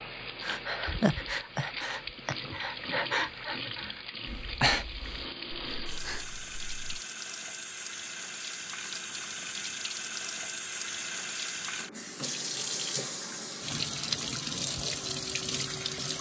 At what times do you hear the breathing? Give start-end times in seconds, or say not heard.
0.4-7.0.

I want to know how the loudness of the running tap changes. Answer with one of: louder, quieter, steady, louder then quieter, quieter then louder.
louder.